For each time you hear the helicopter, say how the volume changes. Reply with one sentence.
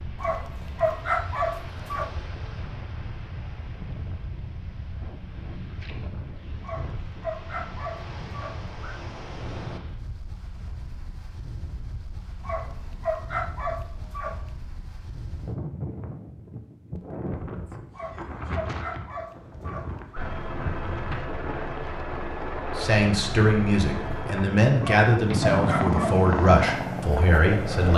The helicopter can be heard from 20.1 to 27.9 s, getting louder.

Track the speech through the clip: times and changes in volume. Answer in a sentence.
The speech can be heard from 22.8 to 27.9 s, at a steady volume.